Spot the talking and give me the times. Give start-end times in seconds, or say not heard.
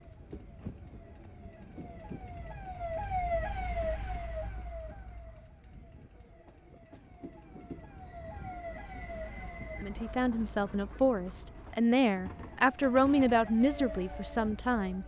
9.8-15.0.